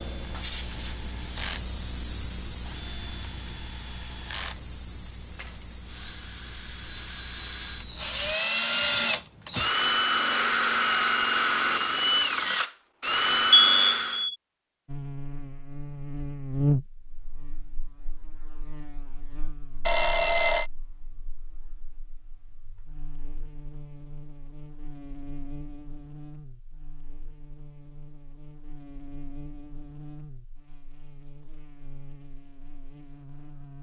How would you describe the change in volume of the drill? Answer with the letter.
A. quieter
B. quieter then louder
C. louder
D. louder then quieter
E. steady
C.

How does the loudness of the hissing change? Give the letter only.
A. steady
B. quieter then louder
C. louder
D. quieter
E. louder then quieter
D.